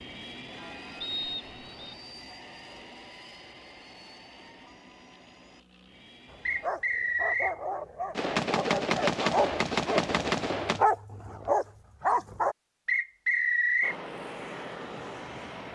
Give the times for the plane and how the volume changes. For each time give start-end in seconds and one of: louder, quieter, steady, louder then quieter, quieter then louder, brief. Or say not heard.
0.0-6.7 quieter
13.8-15.7 brief.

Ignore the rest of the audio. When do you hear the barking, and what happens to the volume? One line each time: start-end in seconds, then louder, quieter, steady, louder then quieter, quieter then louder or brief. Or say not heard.
6.3-12.6 louder.